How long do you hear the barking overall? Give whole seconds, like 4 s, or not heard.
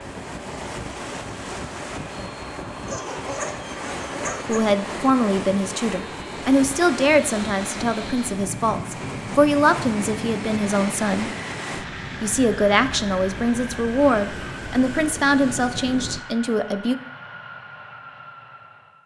2 s.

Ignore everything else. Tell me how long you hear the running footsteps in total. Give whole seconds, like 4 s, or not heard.
not heard.